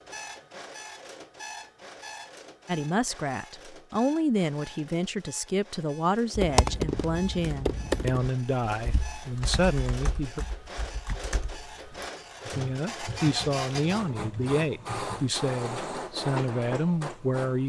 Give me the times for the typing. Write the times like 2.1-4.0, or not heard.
6.3-15.2.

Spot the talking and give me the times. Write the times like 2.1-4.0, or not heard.
2.6-10.4, 12.4-17.6.